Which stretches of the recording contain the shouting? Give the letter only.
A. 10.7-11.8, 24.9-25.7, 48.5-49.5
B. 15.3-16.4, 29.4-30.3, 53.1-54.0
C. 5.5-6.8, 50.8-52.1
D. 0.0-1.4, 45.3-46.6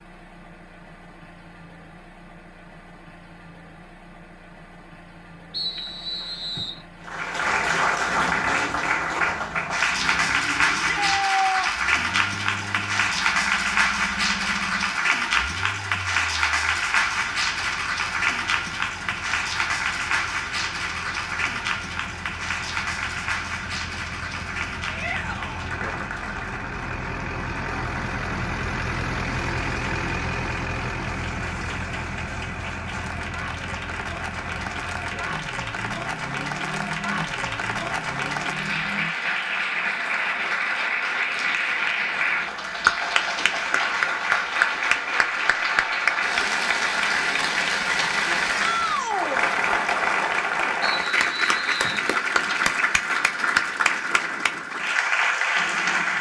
A.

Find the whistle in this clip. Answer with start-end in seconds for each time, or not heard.
5.5-6.8, 50.8-52.1.